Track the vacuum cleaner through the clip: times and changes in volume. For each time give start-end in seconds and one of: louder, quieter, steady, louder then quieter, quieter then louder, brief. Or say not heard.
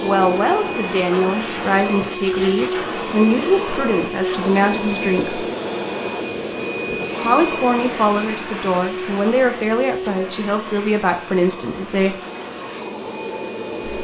0.0-13.9 quieter.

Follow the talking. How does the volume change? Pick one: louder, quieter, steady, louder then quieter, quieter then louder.
steady.